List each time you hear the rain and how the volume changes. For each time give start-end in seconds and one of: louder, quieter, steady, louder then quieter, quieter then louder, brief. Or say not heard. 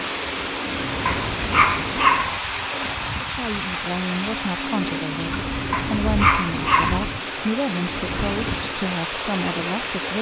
0.0-10.1 steady.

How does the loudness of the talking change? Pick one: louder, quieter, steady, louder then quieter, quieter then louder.
steady.